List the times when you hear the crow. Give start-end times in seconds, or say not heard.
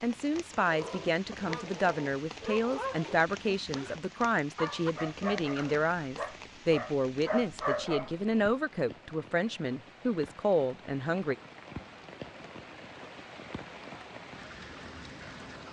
not heard.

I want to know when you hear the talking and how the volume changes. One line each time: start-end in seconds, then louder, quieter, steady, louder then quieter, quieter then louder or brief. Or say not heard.
0.0-11.3 steady.